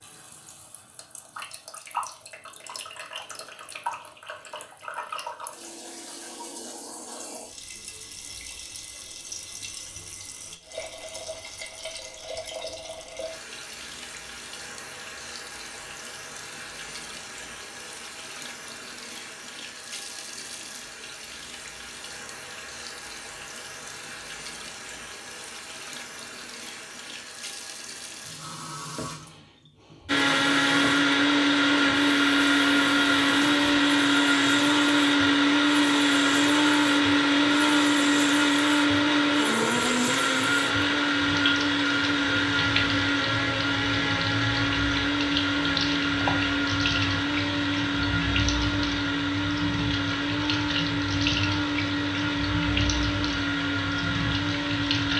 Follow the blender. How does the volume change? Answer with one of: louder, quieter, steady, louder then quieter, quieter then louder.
quieter.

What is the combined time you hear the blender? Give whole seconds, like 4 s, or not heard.
25 s.